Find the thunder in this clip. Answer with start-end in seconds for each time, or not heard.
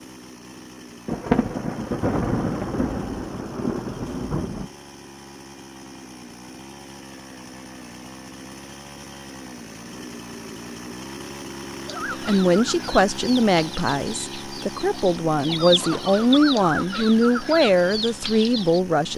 1.1-4.7.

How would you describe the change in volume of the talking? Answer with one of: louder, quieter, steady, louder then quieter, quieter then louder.
quieter then louder.